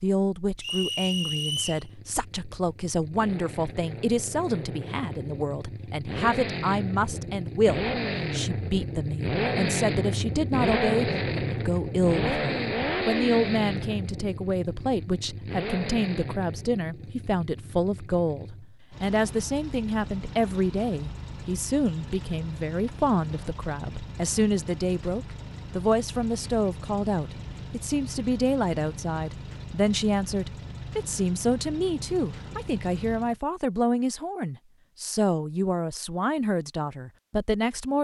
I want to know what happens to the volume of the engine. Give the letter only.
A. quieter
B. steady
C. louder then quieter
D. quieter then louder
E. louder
C.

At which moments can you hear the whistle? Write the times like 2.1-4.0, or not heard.
0.6-1.9.